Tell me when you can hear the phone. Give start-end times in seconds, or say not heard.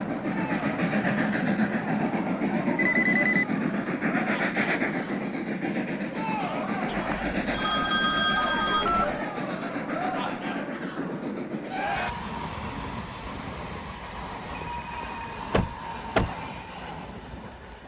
2.8-3.5, 6.8-9.2, 14.7-15.2.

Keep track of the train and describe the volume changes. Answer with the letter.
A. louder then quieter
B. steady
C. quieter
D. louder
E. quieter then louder
C.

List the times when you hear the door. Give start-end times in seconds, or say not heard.
15.5-16.3.